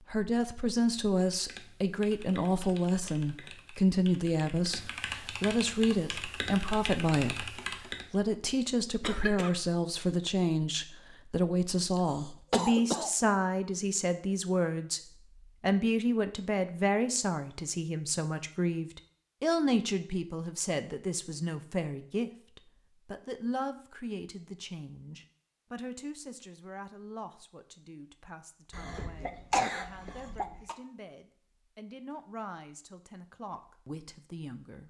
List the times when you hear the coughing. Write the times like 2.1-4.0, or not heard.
9.0-9.5, 11.9-13.1, 28.7-30.8.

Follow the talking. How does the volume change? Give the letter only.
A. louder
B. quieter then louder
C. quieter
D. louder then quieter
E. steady
C.